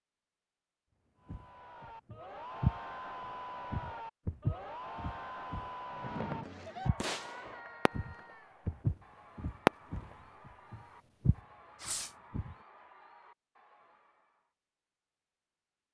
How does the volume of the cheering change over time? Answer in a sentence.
The loudness of the cheering goes down.